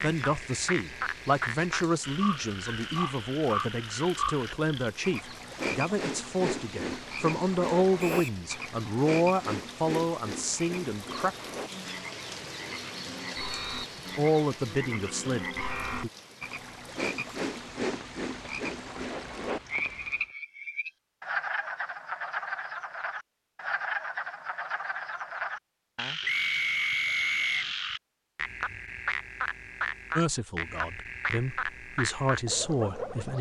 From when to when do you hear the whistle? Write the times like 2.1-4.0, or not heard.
8.0-8.4, 13.3-14.2, 26.2-27.6.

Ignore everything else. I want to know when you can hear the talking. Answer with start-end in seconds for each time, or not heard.
0.0-11.3, 14.2-16.1, 30.1-33.3.